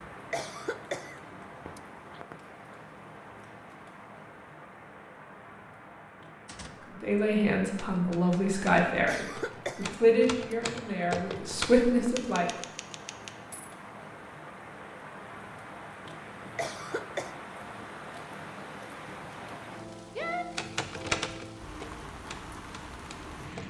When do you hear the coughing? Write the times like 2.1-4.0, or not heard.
0.3-2.2, 9.1-10.9, 16.6-17.4.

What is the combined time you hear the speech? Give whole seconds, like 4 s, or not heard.
6 s.